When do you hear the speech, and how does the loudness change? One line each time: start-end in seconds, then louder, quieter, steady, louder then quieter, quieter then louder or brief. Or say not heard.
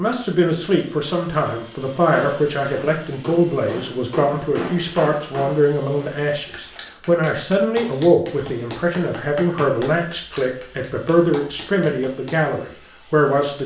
0.0-13.6 steady.